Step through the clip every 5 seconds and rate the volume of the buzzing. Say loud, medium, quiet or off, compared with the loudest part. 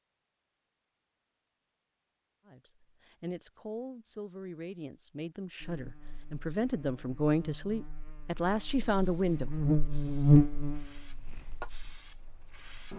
off, medium, loud.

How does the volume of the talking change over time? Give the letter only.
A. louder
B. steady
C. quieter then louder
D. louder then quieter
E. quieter
A.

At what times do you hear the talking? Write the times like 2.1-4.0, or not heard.
2.5-9.9.